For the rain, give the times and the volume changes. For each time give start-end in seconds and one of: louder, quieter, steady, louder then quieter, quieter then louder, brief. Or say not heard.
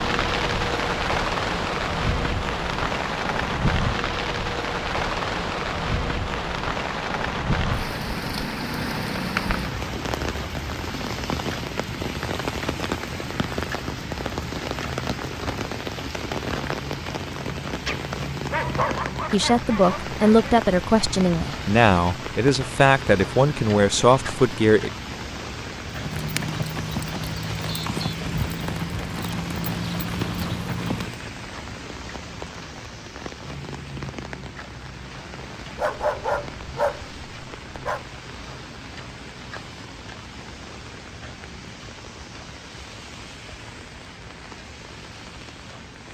0.0-46.0 quieter.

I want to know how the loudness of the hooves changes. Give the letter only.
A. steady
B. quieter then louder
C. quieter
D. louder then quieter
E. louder
A.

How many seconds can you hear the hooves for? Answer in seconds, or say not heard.
5 s.